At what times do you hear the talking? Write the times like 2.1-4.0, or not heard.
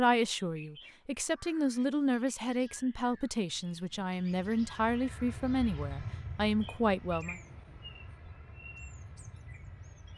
0.0-7.4.